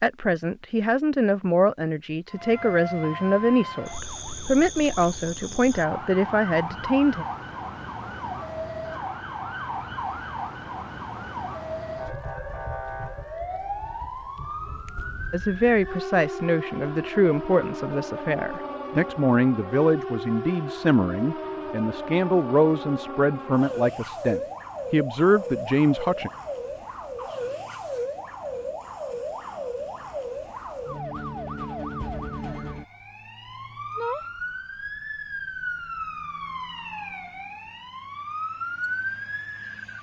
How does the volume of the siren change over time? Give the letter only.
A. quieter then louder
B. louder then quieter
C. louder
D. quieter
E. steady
E.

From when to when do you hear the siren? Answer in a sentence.
You can hear the siren from 2.3 to 39.9 s.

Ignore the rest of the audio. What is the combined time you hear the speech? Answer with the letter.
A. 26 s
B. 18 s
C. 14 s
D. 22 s
B.